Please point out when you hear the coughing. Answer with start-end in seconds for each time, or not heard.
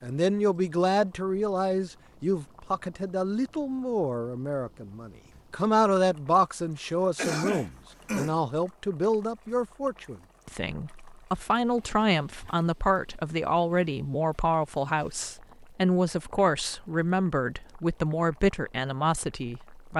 7.2-8.4.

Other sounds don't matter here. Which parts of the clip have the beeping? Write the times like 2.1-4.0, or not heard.
not heard.